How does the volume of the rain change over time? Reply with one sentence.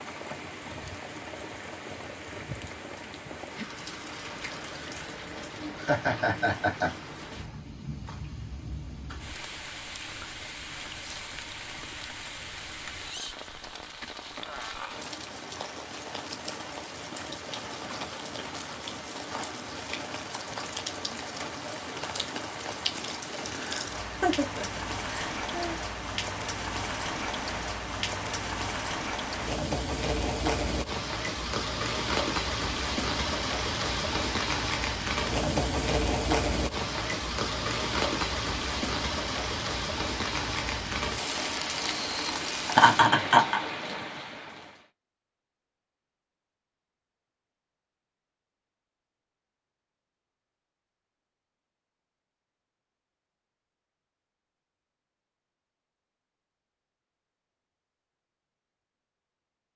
The loudness of the rain goes up.